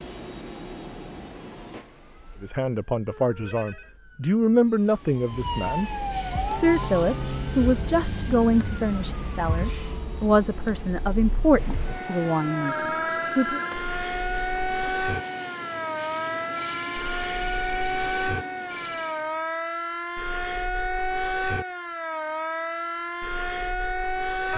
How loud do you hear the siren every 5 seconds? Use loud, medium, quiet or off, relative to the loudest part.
quiet, loud, loud, loud, loud.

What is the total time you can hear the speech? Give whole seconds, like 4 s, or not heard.
11 s.